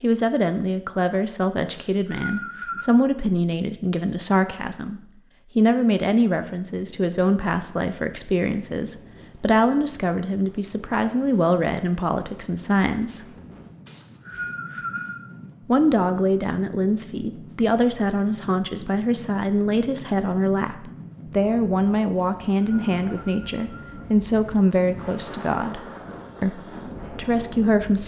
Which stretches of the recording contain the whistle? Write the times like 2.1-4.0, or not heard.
1.7-2.9, 13.8-15.2, 22.1-24.1.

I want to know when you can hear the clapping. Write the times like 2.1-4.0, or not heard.
not heard.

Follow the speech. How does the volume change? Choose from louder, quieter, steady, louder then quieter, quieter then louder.
steady.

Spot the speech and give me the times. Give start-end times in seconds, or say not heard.
0.0-13.3, 15.7-28.0.